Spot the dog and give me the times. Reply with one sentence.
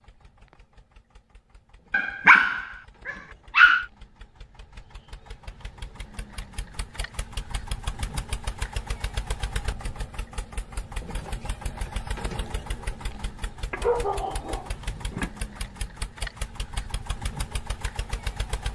The dog can be heard from 1.9 to 3.9 s and from 13.7 to 15.3 s.